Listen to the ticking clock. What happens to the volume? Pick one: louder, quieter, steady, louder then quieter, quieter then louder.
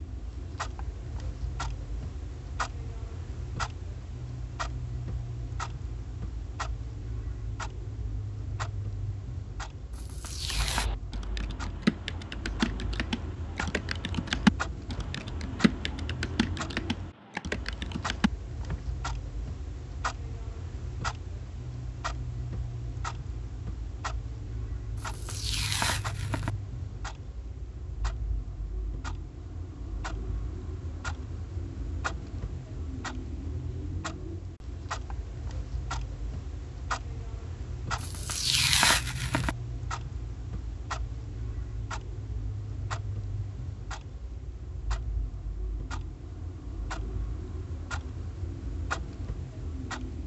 steady.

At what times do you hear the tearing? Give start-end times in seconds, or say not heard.
9.9-10.9, 24.9-26.5, 38.0-39.5.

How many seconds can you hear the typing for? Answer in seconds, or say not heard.
8 s.